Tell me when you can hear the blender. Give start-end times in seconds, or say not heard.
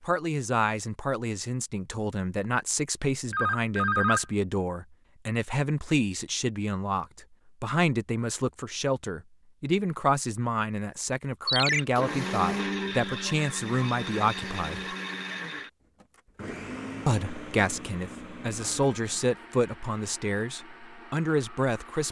11.7-22.0.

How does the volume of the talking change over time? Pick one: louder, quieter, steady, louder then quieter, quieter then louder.
steady.